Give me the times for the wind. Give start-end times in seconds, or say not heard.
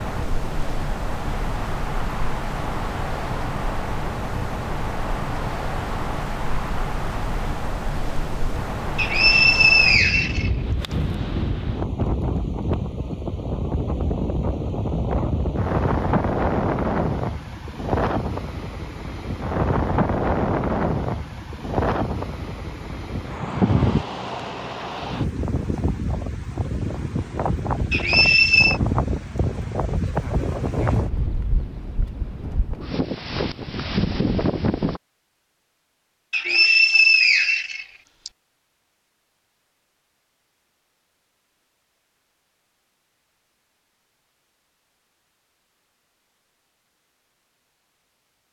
0.0-35.0.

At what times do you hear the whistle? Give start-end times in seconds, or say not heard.
8.9-10.5, 27.9-28.8, 36.3-38.3.